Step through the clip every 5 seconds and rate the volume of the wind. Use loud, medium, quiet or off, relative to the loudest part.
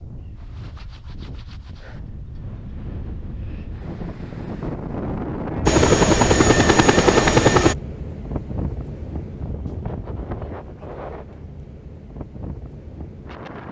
medium, loud, medium.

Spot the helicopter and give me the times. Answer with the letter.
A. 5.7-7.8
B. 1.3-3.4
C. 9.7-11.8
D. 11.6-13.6
A.